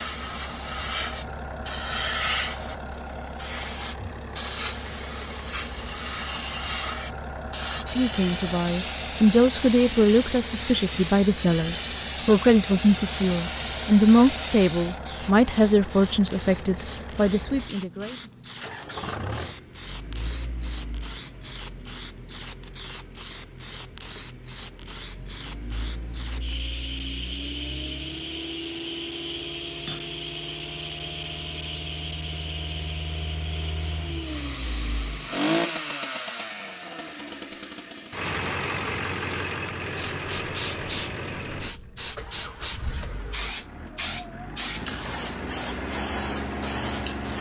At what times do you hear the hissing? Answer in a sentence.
You can hear the hissing from 0.0 to 47.3 s.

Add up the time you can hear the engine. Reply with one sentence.
You can hear the engine for 47 seconds altogether.